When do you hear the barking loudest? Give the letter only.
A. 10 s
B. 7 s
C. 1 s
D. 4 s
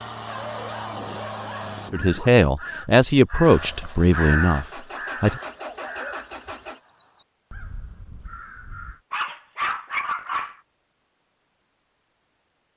A.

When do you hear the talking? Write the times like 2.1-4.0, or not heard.
1.9-5.4.